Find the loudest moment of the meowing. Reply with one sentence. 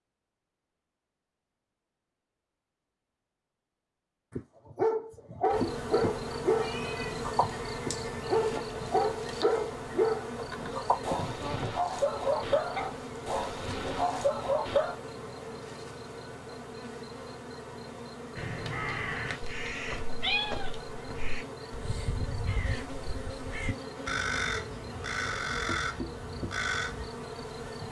The volume of the meowing peaks at 20 seconds.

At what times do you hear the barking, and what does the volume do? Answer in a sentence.
The barking can be heard from 4.3 to 15.0 s, at a steady volume.